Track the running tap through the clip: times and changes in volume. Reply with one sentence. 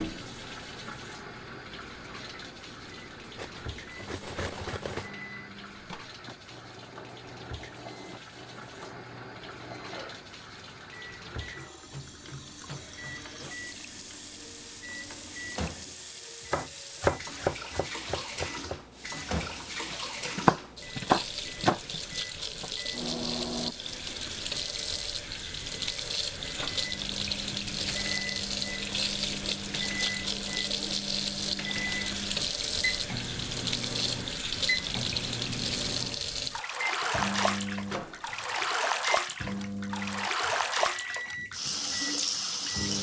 You can hear the running tap from 0.0 to 42.9 s, getting louder.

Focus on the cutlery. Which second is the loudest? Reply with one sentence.
The volume of the cutlery peaks at 5 seconds.